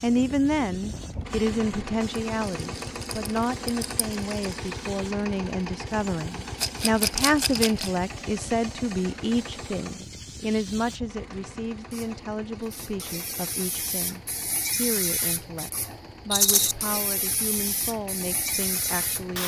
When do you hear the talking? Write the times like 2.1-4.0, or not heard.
0.0-19.4.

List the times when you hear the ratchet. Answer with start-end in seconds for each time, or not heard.
not heard.